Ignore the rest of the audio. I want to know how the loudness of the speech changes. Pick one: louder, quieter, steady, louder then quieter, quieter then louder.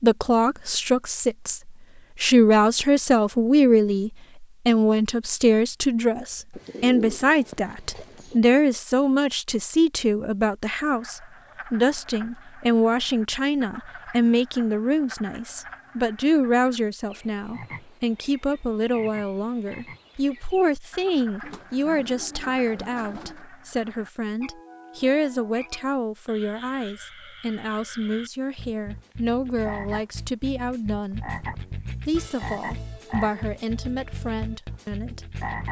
quieter.